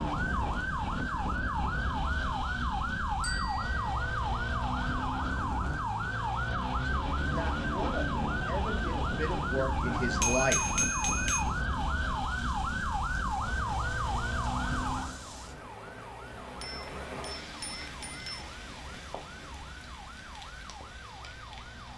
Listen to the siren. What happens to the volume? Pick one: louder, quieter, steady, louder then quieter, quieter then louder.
quieter.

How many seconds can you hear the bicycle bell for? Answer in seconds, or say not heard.
4 s.